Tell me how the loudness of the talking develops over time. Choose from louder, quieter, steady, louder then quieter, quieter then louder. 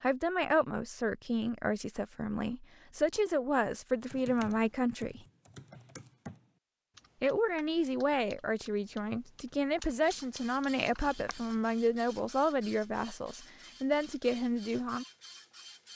steady.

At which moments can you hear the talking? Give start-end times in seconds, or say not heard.
0.0-5.2, 7.2-15.1.